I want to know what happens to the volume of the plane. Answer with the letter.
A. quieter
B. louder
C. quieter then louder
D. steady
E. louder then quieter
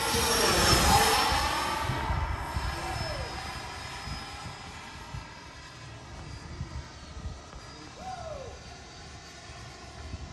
A.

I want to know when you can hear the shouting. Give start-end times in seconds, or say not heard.
2.8-3.4, 8.0-8.6.